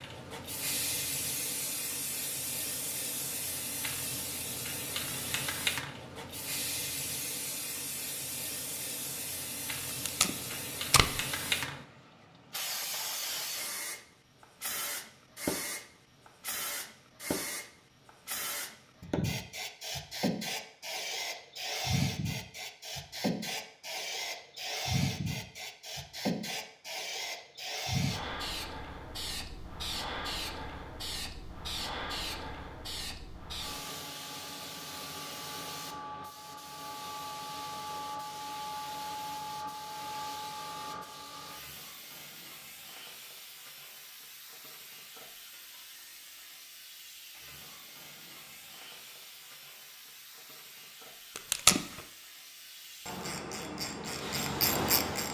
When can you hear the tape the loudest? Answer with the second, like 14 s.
52 s.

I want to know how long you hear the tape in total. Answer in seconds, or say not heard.
2 s.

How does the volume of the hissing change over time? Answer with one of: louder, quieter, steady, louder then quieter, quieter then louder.
quieter.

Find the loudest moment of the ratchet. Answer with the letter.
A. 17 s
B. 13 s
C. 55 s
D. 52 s
C.